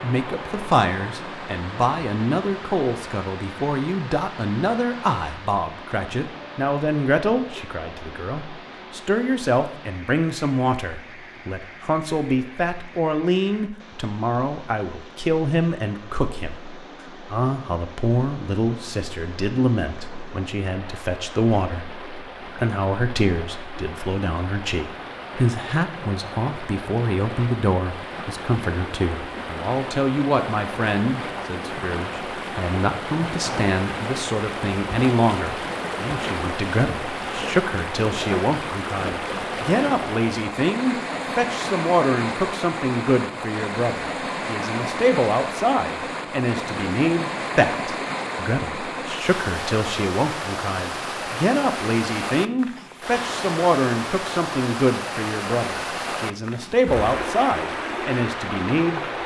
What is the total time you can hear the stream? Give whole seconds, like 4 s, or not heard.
59 s.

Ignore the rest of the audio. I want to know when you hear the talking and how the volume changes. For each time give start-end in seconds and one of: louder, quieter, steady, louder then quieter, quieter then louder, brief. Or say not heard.
0.0-59.0 steady.